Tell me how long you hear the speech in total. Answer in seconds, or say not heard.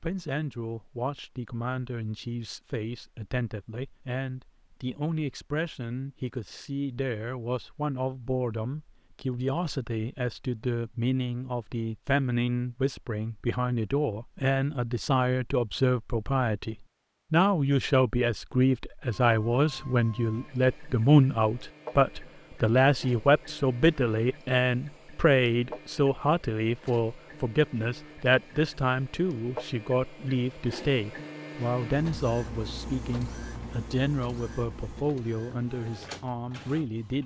37 s.